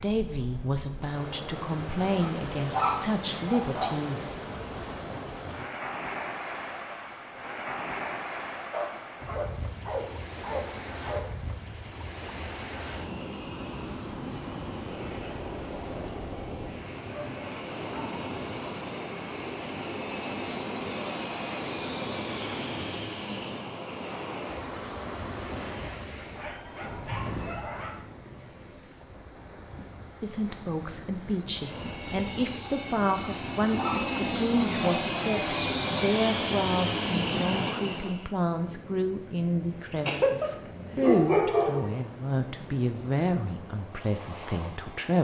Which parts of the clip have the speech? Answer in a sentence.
The speech can be heard from 0.0 to 4.3 s and from 30.2 to 45.1 s.